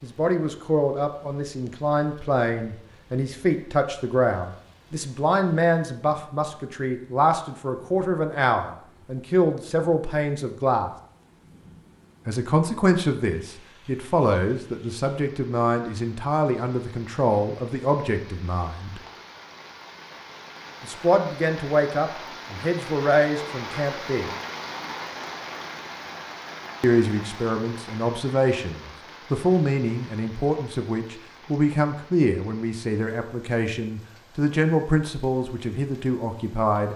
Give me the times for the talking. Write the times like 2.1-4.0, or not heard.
0.0-10.9, 12.2-19.0, 20.8-24.3, 26.8-36.9.